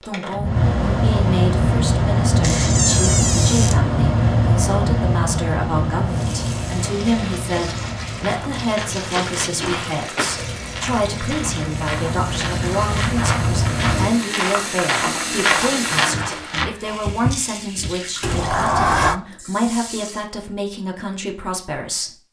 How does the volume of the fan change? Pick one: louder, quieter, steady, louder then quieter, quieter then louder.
quieter then louder.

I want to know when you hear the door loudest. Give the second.
19 s.